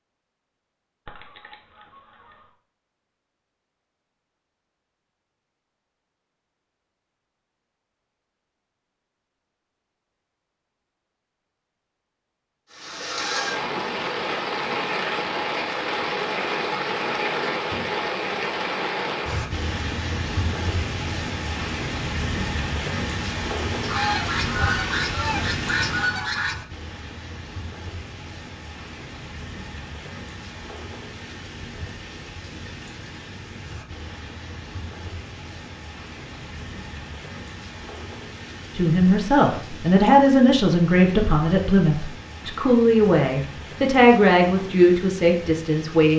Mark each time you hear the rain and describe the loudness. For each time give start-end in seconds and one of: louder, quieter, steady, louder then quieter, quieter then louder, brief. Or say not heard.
12.7-46.1 quieter.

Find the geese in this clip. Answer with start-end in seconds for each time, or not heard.
1.1-2.5, 23.8-26.6.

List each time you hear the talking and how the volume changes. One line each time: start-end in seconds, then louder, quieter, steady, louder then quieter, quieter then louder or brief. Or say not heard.
38.8-46.1 steady.